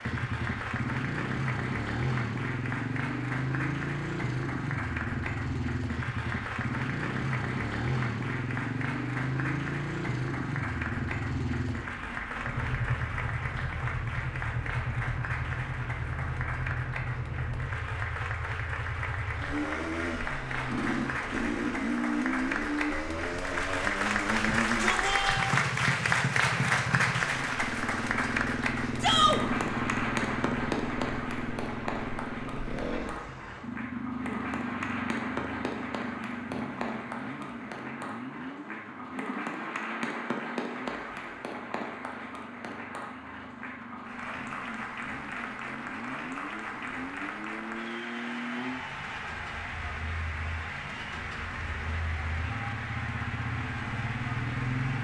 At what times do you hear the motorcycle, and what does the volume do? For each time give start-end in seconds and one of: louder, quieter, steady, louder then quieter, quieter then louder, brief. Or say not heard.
0.0-55.0 quieter.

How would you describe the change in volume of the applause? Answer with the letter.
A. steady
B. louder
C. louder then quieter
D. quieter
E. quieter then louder
C.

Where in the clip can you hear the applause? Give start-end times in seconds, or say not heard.
0.0-55.0.